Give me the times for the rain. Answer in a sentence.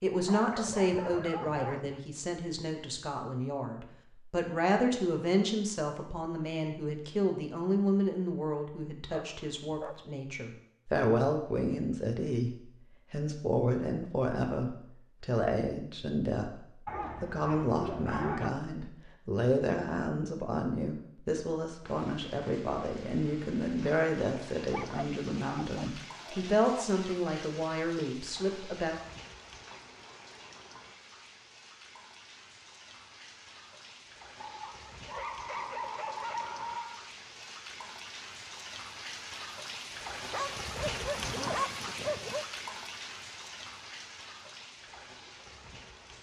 You can hear the rain from 21.8 to 46.1 s.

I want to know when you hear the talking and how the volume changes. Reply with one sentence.
You can hear the talking from 0.0 to 28.9 s, at a steady volume.